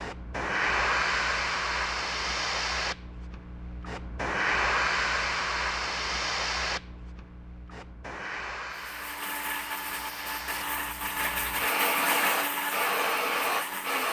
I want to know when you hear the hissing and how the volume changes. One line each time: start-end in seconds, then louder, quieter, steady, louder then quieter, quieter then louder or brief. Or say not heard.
0.0-14.0 quieter then louder.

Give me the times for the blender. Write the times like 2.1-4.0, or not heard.
8.7-14.0.